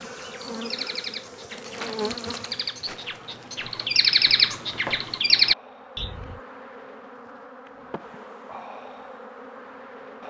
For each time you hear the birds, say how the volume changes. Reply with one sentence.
You can hear the birds from 0.0 to 6.4 s, getting louder.